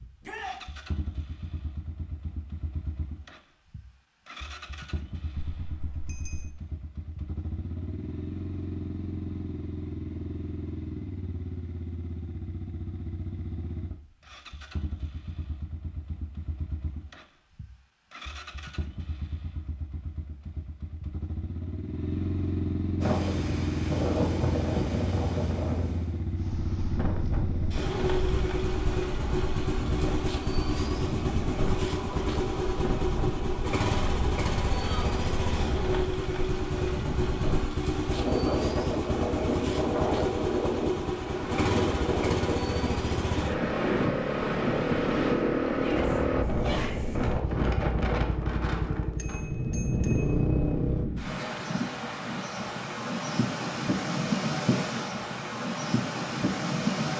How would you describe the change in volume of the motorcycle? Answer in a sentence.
The loudness of the motorcycle goes up.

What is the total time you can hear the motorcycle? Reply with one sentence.
You can hear the motorcycle for 51 seconds altogether.